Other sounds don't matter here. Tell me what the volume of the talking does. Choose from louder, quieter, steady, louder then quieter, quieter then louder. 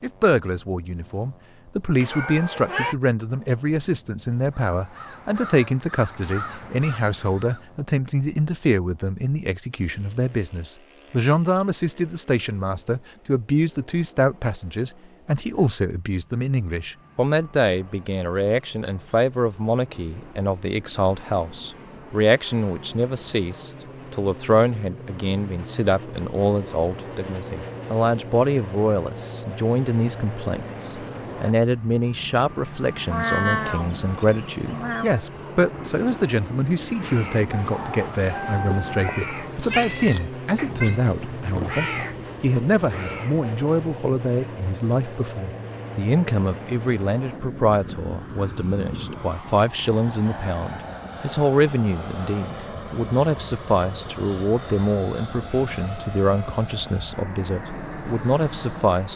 steady.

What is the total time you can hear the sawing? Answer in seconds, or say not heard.
not heard.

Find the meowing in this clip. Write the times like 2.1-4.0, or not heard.
1.9-3.0, 33.1-35.2, 39.7-41.0.